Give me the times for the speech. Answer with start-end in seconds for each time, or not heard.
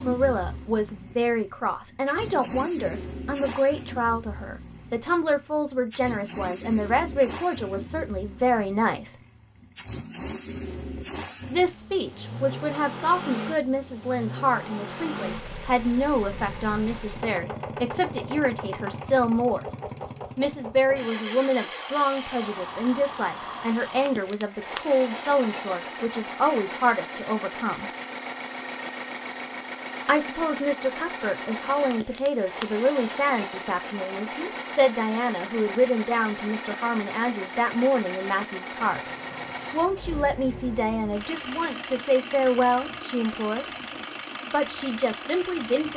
0.0-9.2, 11.4-19.6, 20.4-27.9, 30.1-39.0, 39.7-43.6, 44.5-45.9.